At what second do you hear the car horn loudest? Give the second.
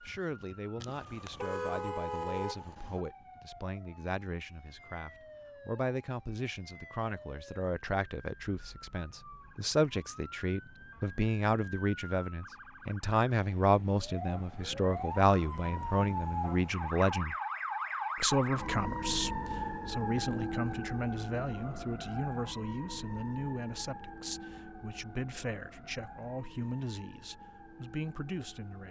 2 s.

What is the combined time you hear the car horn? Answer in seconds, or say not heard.
2 s.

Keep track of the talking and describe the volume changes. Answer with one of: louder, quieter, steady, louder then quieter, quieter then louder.
louder then quieter.